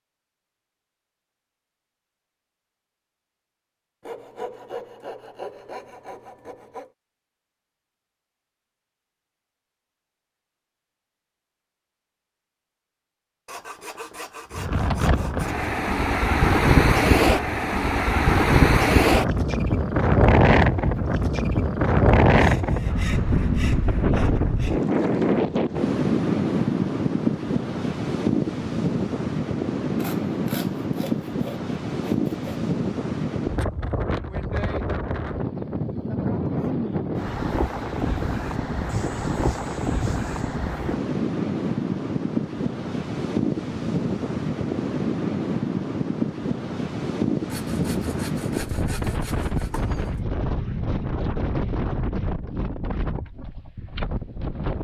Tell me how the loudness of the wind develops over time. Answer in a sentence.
The volume of the wind goes down.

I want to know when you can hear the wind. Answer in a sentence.
You can hear the wind from 14.5 to 54.7 s.